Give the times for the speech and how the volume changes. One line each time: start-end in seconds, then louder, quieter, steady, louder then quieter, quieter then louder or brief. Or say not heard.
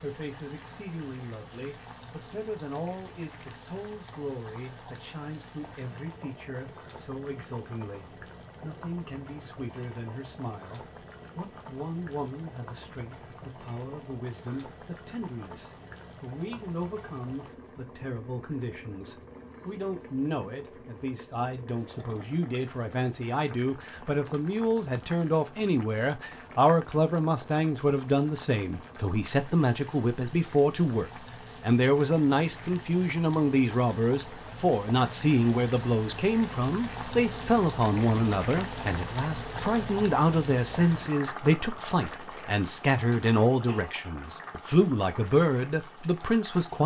0.0-46.8 louder.